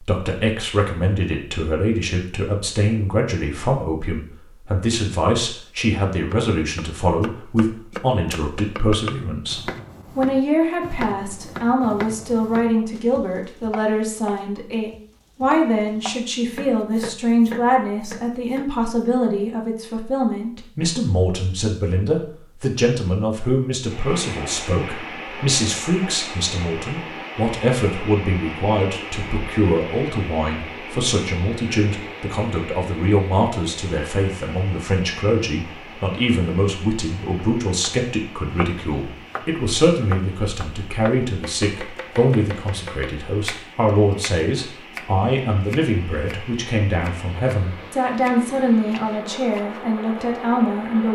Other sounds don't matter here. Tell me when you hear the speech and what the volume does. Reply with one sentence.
You can hear the speech from 0.0 to 51.0 s, at a steady volume.